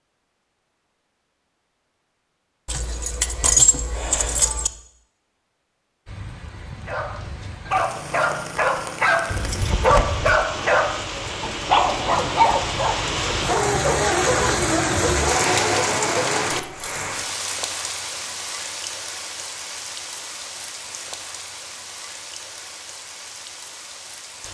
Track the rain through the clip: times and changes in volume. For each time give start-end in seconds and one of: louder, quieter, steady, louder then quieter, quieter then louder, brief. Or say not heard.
6.0-24.4 louder then quieter.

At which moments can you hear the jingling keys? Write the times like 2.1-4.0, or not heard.
2.6-4.7, 9.3-10.4, 16.5-17.1.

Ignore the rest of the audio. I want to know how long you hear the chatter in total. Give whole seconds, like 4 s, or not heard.
not heard.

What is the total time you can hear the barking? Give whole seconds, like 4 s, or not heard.
10 s.